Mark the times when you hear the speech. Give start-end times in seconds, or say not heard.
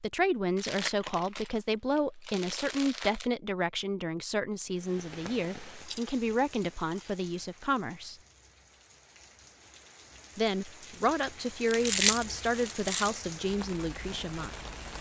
0.0-8.2, 10.3-14.6.